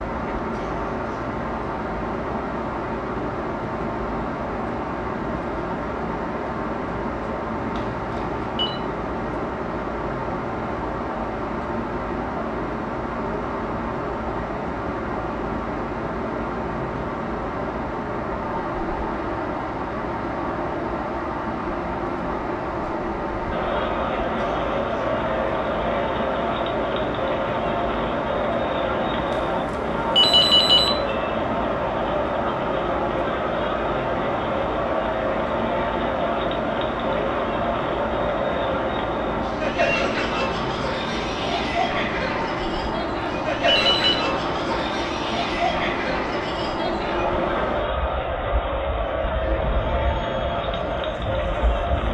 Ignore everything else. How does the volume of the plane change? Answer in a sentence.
The volume of the plane stays about the same.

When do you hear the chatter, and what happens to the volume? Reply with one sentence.
The chatter can be heard from 23.5 to 52.0 s, at a steady volume.